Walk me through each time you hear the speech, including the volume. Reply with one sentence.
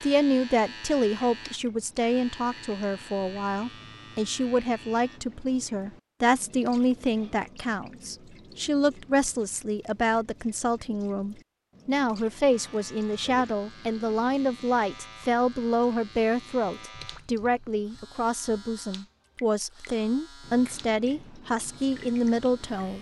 You can hear the speech from 0.0 to 22.9 s, at a steady volume.